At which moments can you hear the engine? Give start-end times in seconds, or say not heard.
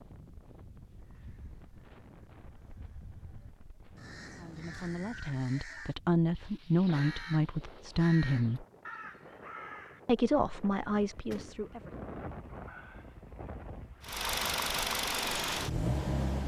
14.0-16.4.